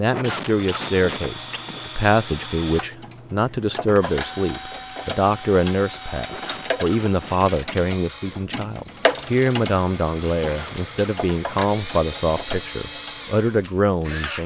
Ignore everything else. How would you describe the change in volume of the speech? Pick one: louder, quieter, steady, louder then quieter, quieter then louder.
steady.